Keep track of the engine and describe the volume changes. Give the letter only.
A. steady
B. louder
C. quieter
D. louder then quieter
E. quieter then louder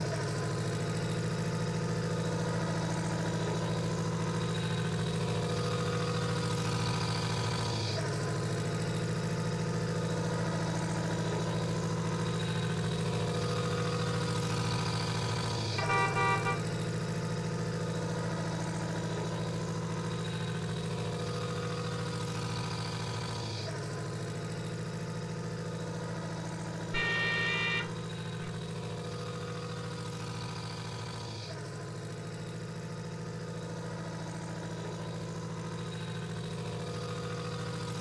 C.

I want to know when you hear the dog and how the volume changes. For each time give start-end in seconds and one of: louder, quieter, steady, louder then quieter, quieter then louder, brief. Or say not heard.
not heard.